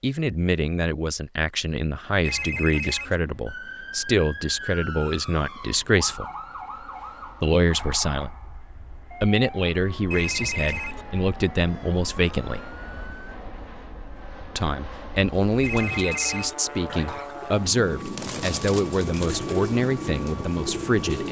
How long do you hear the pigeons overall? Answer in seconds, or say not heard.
6 s.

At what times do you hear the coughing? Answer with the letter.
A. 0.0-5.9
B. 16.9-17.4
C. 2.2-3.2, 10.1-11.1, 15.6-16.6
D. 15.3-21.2
B.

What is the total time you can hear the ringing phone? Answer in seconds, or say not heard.
3 s.